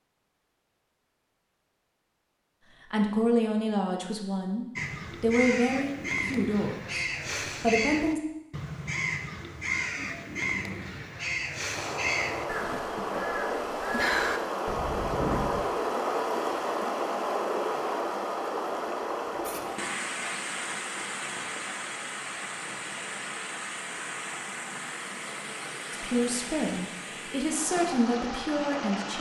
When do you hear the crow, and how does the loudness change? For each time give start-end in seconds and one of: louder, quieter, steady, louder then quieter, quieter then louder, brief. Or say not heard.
4.8-15.7 steady.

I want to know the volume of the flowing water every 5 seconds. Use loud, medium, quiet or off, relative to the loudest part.
off, off, loud, loud, medium, medium.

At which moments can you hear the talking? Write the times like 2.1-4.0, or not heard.
2.9-8.2, 25.9-29.1.